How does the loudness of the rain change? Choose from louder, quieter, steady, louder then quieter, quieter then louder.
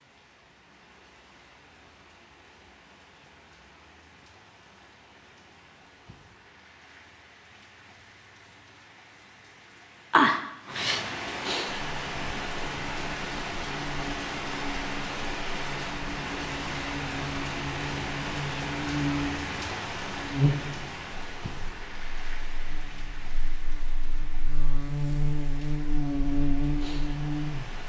louder then quieter.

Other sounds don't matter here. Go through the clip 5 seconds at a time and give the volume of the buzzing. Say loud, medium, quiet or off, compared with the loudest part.
off, off, quiet, medium, loud, loud.